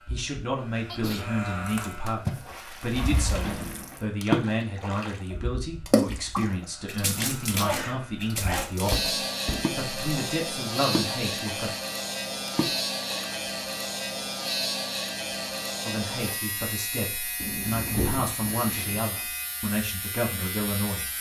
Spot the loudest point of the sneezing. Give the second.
8 s.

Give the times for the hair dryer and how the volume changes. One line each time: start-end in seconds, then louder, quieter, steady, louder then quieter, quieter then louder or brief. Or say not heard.
not heard.